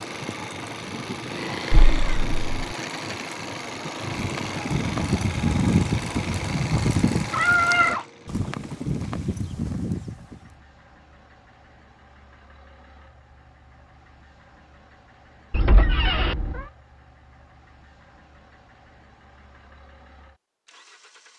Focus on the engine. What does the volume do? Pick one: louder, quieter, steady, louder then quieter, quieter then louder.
quieter.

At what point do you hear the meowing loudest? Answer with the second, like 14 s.
8 s.